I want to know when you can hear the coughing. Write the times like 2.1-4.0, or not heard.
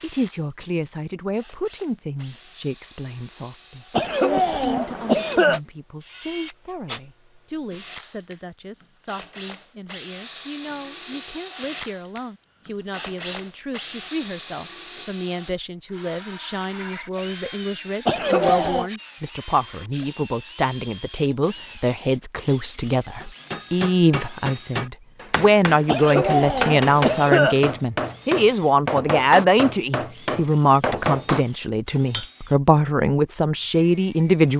3.9-5.6, 18.1-18.9, 25.9-27.6.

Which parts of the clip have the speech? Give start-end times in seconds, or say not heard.
0.0-34.5.